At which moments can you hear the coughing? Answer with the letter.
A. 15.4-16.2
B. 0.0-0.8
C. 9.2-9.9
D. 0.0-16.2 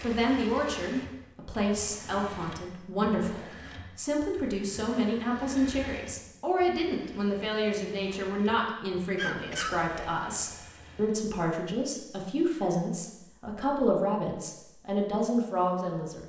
C.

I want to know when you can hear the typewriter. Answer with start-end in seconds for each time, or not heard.
not heard.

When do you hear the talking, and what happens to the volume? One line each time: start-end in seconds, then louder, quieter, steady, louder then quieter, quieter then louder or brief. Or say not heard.
0.0-16.2 steady.